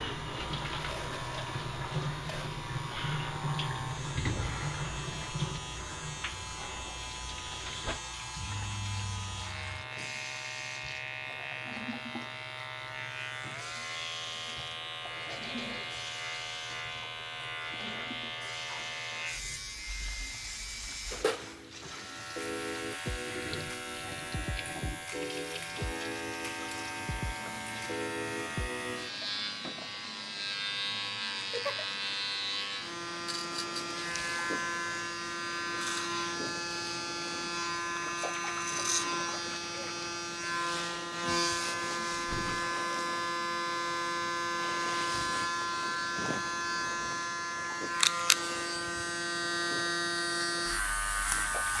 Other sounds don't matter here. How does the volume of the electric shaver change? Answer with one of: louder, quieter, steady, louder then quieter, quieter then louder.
louder.